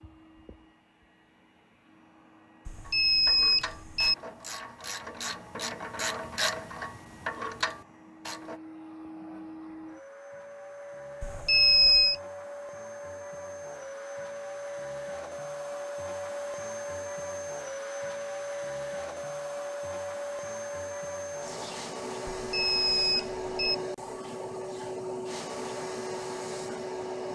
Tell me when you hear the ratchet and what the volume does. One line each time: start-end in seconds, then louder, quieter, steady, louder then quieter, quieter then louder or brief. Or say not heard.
2.9-8.6 louder.